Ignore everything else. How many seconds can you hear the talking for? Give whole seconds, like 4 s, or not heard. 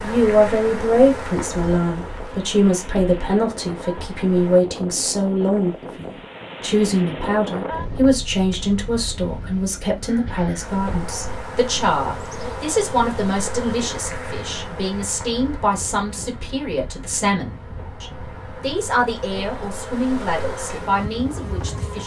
22 s.